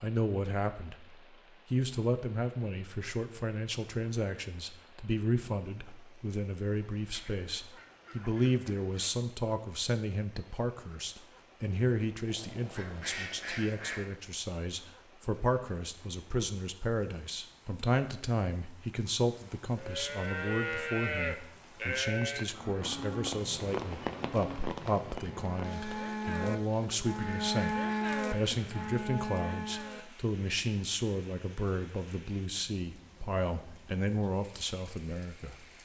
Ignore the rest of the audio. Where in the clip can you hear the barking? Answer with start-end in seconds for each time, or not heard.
not heard.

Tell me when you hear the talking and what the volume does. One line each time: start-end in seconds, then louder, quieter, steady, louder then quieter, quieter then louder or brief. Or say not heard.
0.0-35.6 steady.